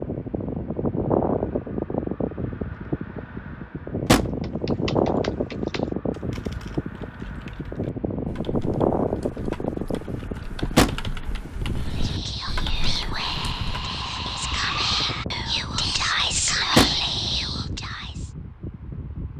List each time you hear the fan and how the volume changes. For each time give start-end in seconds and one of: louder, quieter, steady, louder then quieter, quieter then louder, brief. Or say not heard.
0.0-19.3 quieter.